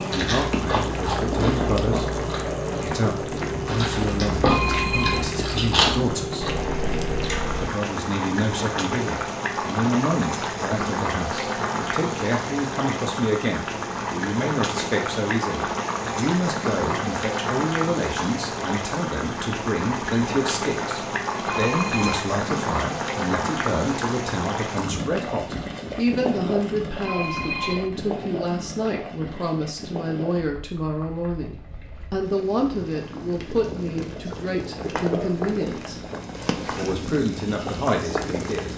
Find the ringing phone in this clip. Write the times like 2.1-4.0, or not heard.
4.5-5.4, 21.4-22.3, 27.0-28.1.